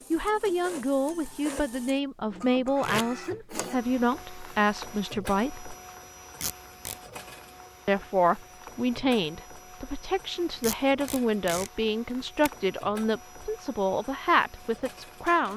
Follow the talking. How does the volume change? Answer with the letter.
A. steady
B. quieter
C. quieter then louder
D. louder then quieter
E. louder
A.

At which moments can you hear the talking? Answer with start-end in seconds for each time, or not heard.
0.1-5.8, 7.8-15.5.